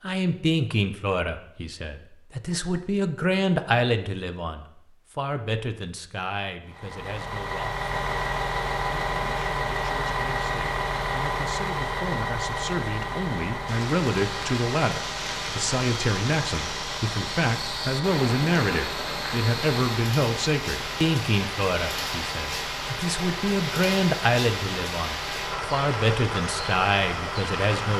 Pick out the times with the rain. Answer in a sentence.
You can hear the rain from 13.7 to 27.9 s.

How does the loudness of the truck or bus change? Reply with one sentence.
The loudness of the truck or bus goes down.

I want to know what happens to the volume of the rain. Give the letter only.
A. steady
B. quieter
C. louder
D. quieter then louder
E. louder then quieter
A.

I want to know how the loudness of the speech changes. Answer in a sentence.
The volume of the speech goes down, then up.